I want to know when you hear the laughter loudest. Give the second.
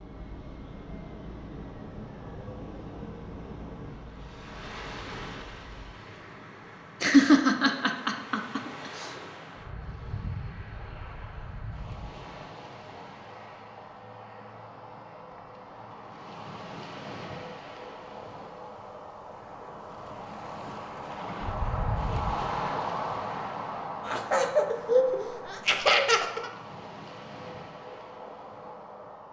7 s.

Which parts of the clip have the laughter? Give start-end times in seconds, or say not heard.
7.0-9.1, 24.1-26.5.